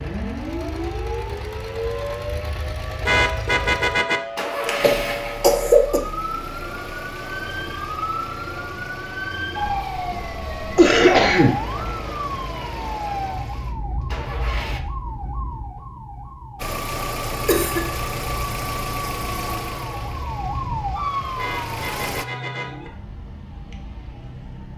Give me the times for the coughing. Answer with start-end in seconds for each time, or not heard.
4.6-6.0, 10.8-11.6, 17.4-17.9.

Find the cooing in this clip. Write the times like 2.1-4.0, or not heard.
not heard.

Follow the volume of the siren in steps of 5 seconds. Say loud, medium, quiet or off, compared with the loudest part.
loud, loud, loud, medium, loud.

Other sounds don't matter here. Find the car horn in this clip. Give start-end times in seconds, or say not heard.
3.0-4.2, 21.4-22.9.